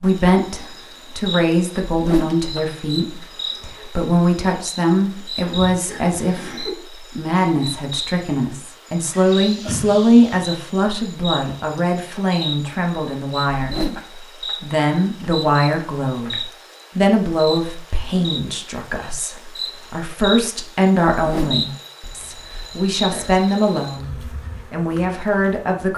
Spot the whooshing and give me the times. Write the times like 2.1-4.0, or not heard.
1.9-2.4, 13.5-14.0, 21.1-21.6.